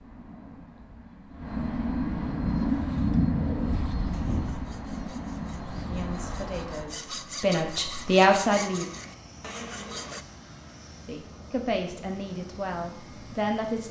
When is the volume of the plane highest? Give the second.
3 s.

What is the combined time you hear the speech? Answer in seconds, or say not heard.
6 s.